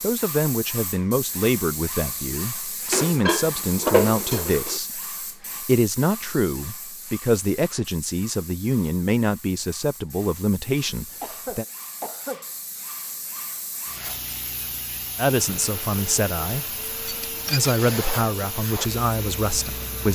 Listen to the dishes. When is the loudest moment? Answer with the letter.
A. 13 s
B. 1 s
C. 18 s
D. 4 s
D.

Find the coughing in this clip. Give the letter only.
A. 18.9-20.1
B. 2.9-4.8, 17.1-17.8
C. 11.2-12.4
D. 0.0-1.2
C.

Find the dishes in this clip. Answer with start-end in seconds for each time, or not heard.
2.9-4.8, 17.1-17.8.